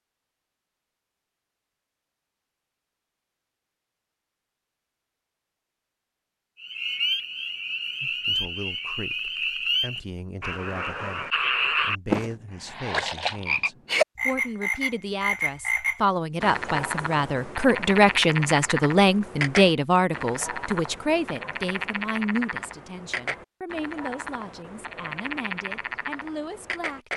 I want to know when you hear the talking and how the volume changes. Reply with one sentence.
The talking can be heard from 8.0 to 27.1 s, getting louder then quieter.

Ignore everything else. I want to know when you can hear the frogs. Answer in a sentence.
You can hear the frogs from 6.6 to 27.1 s.